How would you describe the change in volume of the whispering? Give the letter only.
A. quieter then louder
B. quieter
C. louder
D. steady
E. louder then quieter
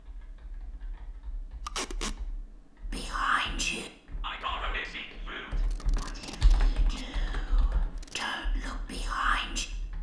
A.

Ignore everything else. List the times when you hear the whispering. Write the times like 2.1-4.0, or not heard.
2.9-9.7.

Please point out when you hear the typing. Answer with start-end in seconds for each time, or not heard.
0.0-9.9.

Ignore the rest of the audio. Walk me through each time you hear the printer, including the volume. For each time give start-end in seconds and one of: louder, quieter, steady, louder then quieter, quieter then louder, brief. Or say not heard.
not heard.